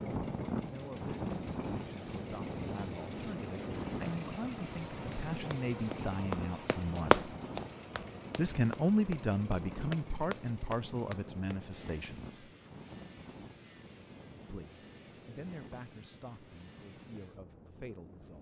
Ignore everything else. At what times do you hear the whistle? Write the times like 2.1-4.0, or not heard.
not heard.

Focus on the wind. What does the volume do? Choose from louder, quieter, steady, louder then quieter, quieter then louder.
quieter.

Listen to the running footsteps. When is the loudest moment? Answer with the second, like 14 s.
7 s.